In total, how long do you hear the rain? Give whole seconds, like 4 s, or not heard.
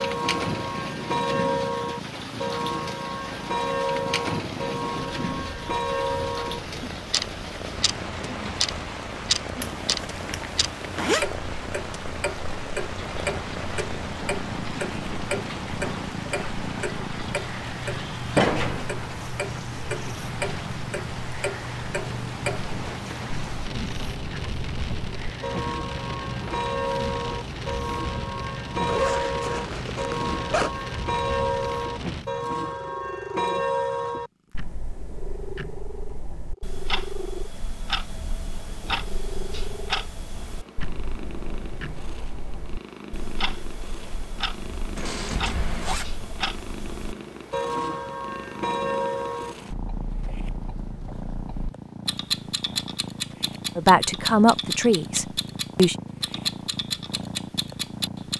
32 s.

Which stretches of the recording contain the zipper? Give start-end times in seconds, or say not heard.
9.6-11.2, 28.9-30.7, 45.0-46.1.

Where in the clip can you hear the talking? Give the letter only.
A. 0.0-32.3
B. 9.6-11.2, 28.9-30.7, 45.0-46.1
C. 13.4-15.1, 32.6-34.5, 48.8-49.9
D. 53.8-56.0
D.